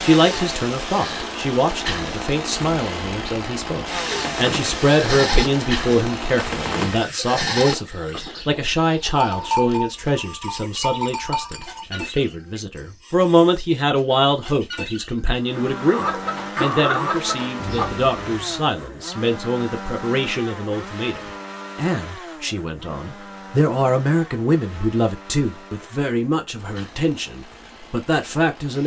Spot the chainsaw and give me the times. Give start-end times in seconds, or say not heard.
0.0-7.1, 15.3-28.8.